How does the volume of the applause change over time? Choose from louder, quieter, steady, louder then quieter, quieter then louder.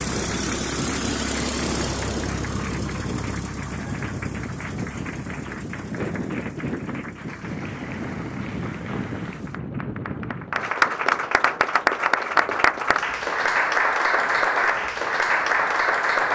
louder.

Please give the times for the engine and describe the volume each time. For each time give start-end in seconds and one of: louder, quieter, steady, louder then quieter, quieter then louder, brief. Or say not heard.
0.0-9.6 quieter.